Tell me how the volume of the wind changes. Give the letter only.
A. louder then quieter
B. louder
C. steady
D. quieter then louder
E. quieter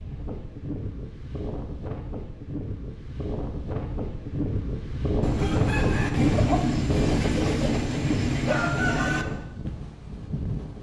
A.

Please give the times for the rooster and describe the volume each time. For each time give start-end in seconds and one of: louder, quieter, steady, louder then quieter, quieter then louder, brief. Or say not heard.
5.2-9.2 steady.